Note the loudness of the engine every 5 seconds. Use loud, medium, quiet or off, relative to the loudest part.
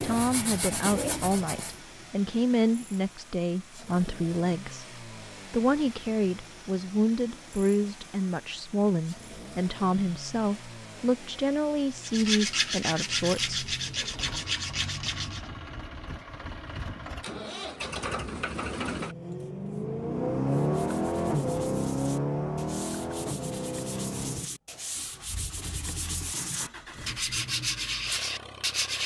quiet, quiet, quiet, medium, loud, quiet.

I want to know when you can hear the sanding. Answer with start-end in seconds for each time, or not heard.
0.0-1.8, 12.0-15.5, 20.4-29.0.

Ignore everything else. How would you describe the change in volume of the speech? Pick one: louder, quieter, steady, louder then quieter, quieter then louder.
steady.